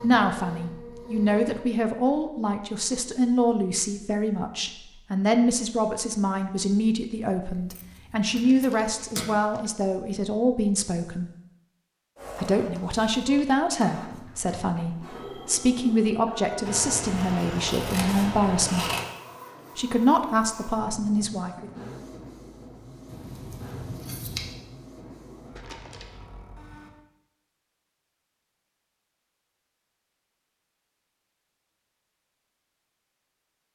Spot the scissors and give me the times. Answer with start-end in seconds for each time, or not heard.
7.5-9.2, 16.6-19.1, 23.1-24.6.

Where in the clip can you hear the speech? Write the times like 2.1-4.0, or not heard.
0.0-11.3, 12.3-18.9, 19.8-21.7.